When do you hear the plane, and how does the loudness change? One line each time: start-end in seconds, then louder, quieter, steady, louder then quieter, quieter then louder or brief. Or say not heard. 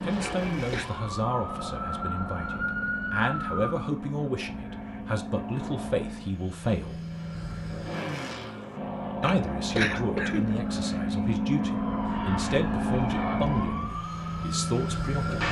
0.0-15.4 louder.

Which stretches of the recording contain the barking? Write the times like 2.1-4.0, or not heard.
not heard.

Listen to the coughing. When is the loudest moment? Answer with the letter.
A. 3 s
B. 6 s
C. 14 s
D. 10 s
D.